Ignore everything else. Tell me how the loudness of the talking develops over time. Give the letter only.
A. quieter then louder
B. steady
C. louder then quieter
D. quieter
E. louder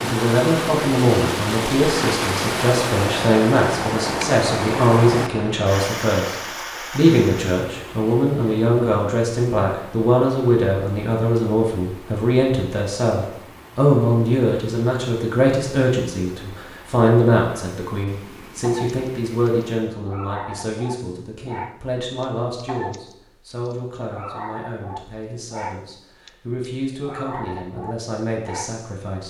D.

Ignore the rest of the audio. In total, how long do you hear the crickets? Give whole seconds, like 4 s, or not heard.
not heard.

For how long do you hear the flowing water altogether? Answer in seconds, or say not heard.
20 s.